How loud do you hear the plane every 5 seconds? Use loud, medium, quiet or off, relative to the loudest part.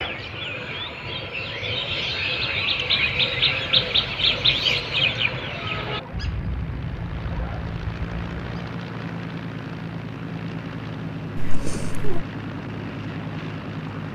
off, loud, loud.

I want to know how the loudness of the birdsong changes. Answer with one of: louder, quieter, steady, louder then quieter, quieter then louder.
louder then quieter.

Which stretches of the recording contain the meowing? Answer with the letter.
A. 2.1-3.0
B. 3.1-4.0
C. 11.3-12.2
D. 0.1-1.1
C.